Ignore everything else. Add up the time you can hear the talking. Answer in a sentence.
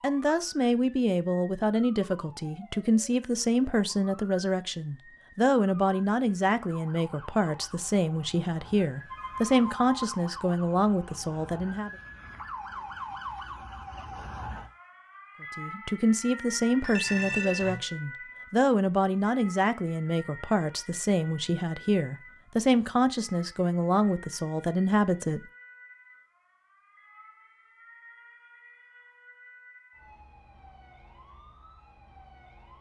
The talking can be heard for 22 seconds in total.